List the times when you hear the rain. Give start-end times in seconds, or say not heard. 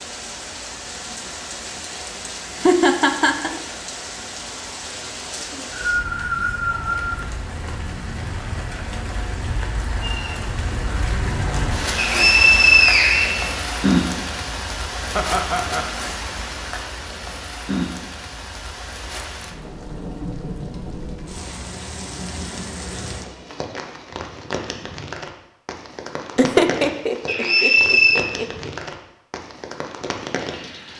0.0-30.9.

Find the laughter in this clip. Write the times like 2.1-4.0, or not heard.
2.2-3.5, 15.2-15.9, 26.4-28.7.